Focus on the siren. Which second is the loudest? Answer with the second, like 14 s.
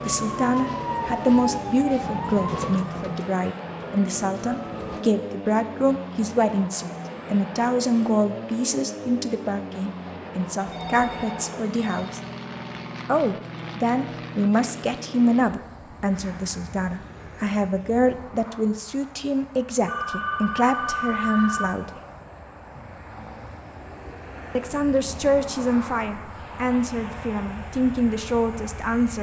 1 s.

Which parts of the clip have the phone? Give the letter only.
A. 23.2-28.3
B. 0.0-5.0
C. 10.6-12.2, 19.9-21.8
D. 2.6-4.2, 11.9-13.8
C.